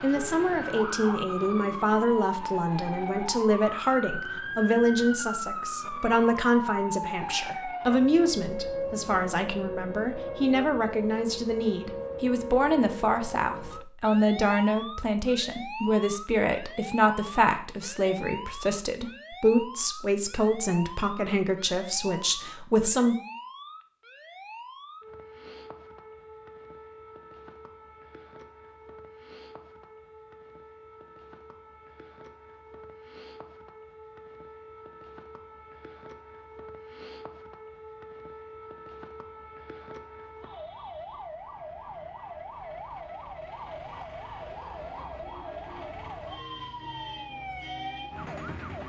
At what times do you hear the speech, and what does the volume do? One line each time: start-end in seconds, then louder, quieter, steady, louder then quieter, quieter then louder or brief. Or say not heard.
0.0-23.1 steady.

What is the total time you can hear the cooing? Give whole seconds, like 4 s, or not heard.
not heard.